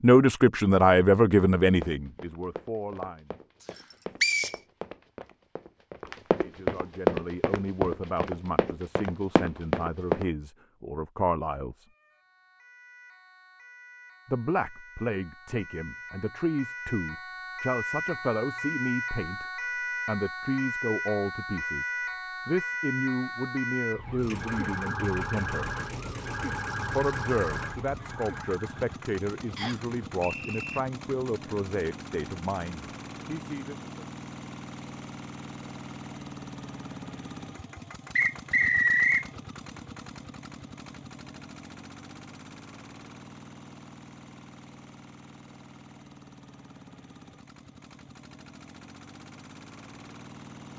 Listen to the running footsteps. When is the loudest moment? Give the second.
7 s.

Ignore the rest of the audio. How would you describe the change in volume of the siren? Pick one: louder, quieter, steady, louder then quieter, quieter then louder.
louder.